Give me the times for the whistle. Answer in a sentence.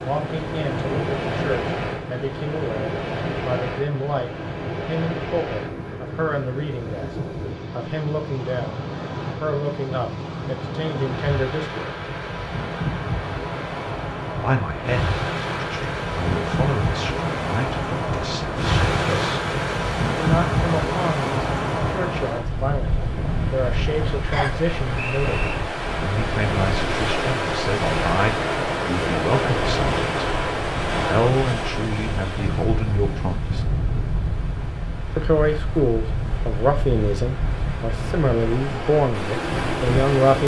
The whistle can be heard from 24.3 to 25.6 s.